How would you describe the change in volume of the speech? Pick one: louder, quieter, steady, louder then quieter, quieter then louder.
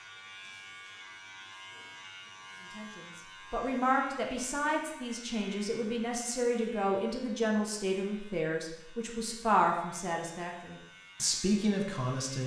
steady.